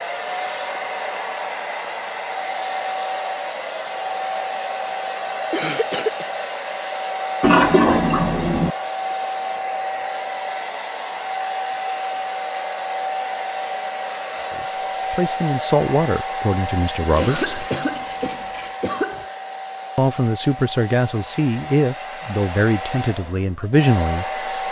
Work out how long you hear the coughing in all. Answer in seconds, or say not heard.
3 s.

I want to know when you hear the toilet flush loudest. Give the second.
8 s.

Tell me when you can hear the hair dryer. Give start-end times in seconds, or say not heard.
0.0-24.6.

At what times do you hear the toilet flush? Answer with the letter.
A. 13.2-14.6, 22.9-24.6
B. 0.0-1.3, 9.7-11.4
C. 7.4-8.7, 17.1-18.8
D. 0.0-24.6
C.